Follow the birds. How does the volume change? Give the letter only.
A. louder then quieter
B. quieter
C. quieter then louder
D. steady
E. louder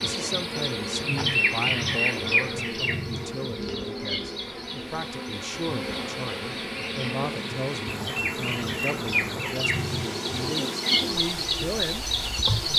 C.